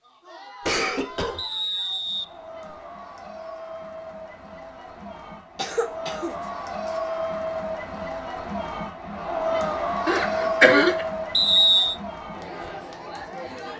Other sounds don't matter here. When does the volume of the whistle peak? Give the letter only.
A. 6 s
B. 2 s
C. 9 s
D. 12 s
D.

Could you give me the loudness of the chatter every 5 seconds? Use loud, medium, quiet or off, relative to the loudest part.
medium, loud, loud.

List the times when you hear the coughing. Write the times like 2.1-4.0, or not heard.
0.6-1.4, 5.5-6.3, 10.1-10.9.